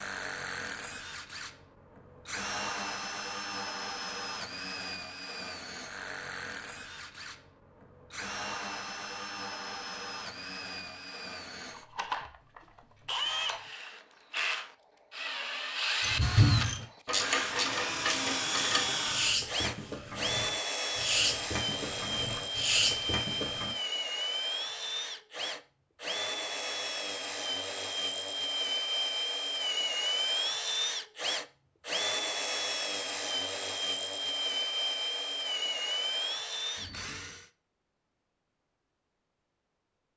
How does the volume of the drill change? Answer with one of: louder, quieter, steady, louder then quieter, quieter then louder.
louder.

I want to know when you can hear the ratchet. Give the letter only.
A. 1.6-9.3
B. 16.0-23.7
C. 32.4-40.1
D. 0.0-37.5
B.